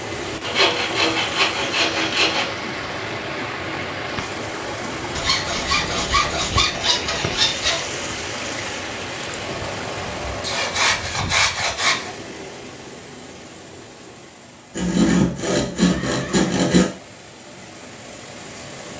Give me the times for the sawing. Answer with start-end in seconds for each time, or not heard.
0.4-2.5, 5.2-7.8, 10.4-12.1, 14.8-16.9.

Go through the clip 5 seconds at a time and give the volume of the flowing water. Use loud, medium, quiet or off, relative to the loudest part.
loud, loud, medium, medium.